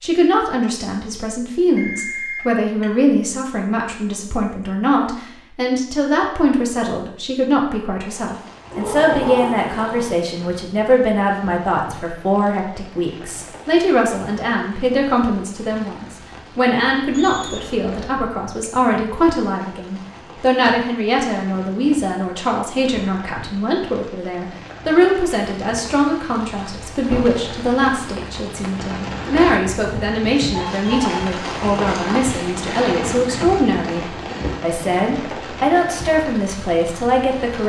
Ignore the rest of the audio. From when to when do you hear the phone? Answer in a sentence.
You can hear the phone from 1.8 to 2.9 s, from 17.1 to 18.3 s and from 30.5 to 31.2 s.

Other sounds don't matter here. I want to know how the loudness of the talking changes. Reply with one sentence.
The volume of the talking stays about the same.